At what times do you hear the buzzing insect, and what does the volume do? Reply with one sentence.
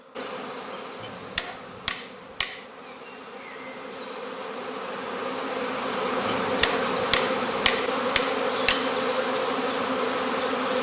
The buzzing insect can be heard from 0.0 to 10.7 s, getting louder.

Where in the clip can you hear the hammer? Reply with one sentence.
You can hear the hammer from 1.0 to 2.6 s and from 6.2 to 8.9 s.